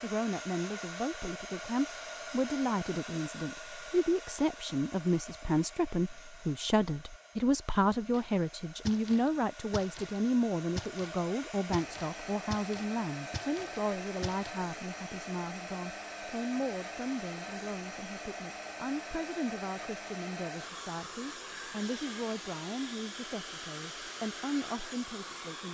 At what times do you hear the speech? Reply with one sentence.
You can hear the speech from 0.0 to 25.6 s.